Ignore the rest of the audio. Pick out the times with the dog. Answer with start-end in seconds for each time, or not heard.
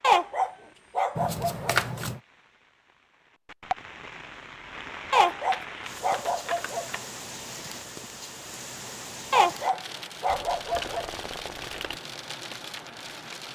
0.0-1.8, 5.1-6.8, 9.3-11.1.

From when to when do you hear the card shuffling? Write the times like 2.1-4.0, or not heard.
1.1-2.2, 5.3-7.0, 10.2-12.0.